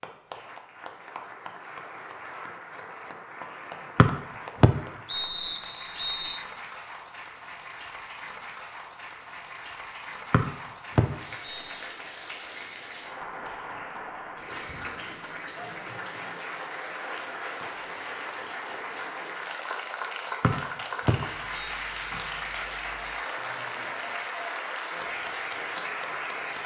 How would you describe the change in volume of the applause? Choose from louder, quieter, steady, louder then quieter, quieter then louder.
louder.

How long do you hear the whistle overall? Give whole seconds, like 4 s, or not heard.
5 s.